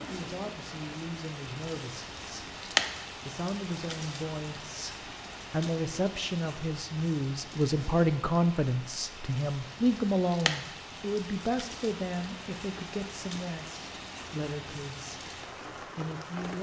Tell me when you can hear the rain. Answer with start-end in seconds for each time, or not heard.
0.0-16.5.